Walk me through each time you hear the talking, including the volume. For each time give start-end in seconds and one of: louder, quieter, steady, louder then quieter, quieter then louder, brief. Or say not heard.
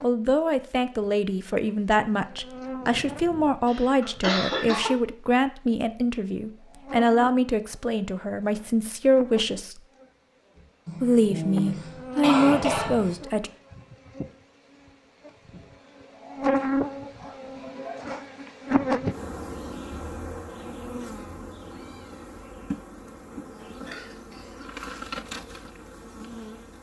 0.0-9.8 steady
11.0-13.5 brief.